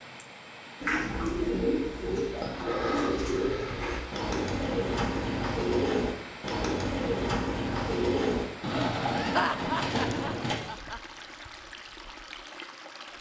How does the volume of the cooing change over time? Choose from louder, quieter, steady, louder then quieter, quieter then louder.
steady.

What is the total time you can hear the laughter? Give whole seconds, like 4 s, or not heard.
2 s.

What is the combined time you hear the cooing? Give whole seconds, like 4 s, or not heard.
10 s.